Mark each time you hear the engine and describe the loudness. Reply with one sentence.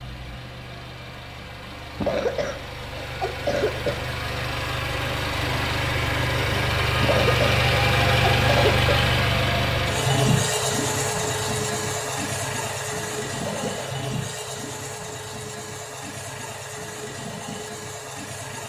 The engine can be heard from 0.0 to 18.6 s, getting louder then quieter.